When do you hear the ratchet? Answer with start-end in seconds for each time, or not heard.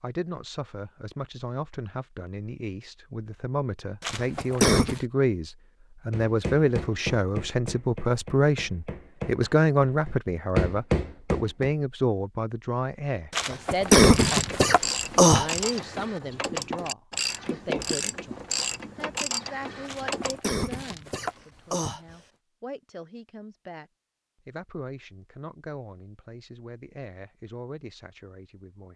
14.0-20.4.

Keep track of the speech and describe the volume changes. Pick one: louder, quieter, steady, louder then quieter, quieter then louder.
louder then quieter.